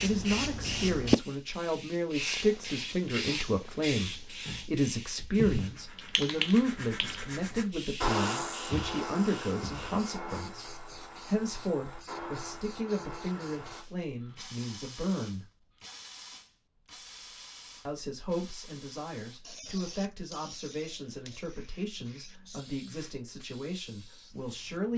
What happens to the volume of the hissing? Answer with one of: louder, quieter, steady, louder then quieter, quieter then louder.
quieter.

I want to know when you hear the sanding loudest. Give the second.
8 s.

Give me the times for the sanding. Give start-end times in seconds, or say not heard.
5.5-13.8.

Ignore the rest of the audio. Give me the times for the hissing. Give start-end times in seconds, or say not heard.
0.0-24.9.